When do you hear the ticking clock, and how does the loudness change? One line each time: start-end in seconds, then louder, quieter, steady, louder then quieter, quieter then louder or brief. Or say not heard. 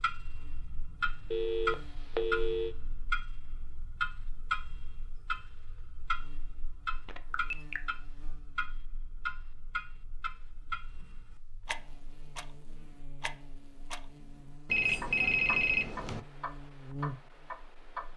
0.0-18.1 quieter.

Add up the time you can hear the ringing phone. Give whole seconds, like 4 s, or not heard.
4 s.